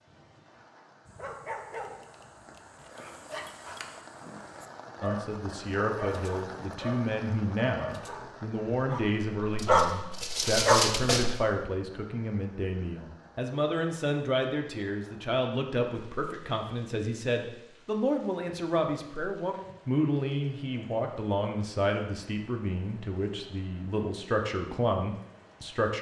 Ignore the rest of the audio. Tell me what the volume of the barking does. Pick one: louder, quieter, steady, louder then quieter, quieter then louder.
louder.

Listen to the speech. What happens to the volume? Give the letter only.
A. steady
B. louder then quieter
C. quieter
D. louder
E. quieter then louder
A.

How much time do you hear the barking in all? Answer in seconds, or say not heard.
10 s.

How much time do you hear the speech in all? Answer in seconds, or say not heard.
21 s.